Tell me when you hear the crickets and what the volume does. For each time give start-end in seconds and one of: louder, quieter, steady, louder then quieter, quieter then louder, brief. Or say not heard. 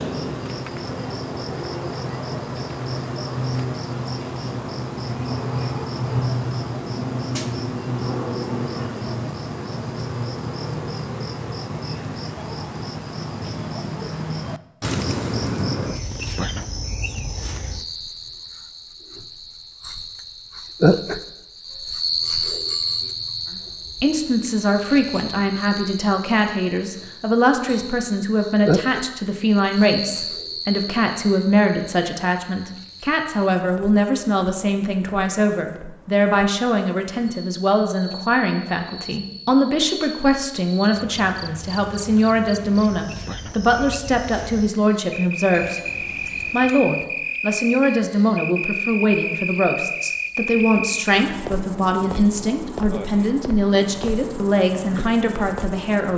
0.0-56.1 quieter then louder.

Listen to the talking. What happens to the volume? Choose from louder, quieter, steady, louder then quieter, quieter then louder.
steady.